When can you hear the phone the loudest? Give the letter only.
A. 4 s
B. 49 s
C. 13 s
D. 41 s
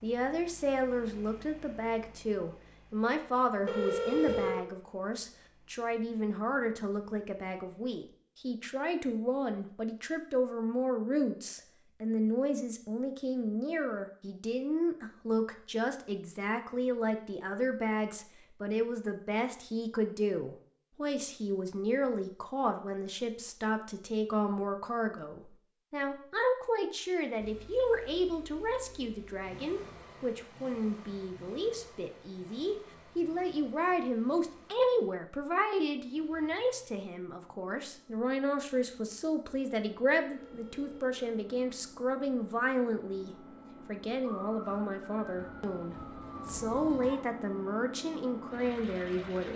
A.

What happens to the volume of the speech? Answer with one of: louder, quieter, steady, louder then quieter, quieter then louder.
steady.